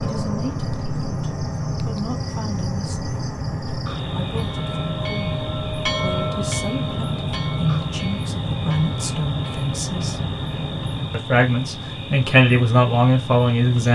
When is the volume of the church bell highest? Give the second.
6 s.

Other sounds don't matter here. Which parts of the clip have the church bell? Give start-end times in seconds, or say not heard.
4.3-9.8.